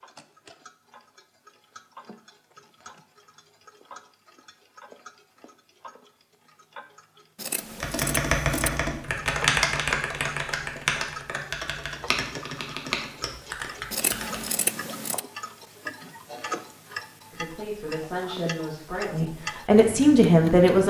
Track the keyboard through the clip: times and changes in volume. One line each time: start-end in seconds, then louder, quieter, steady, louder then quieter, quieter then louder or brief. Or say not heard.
7.8-14.6 quieter.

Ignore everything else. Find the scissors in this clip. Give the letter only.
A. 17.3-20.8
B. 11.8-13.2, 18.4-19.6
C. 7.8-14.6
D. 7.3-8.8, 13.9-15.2
D.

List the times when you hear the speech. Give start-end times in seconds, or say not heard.
17.3-20.8.